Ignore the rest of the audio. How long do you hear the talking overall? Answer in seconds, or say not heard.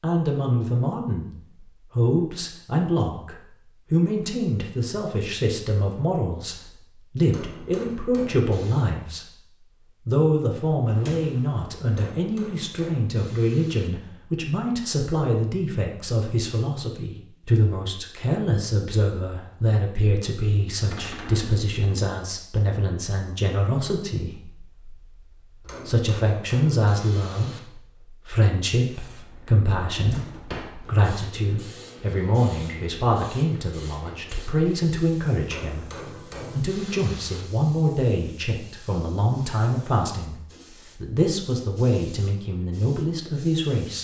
43 s.